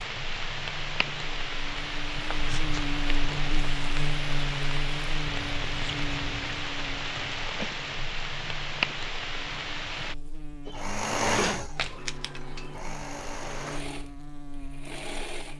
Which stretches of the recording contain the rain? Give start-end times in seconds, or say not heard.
0.0-10.2.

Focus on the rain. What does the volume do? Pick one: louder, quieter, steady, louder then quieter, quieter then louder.
steady.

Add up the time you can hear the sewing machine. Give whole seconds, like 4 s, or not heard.
5 s.